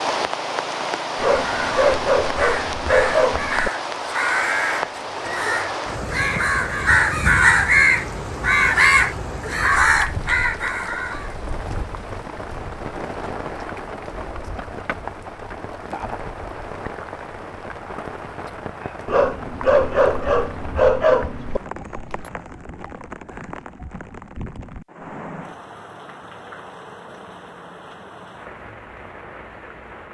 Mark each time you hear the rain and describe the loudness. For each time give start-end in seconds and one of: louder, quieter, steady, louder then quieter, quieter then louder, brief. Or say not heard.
0.0-30.0 quieter.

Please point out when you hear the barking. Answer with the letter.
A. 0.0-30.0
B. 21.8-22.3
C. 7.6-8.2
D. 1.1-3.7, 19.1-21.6
D.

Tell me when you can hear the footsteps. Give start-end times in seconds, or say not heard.
not heard.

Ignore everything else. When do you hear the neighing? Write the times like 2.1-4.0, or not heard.
21.8-22.3.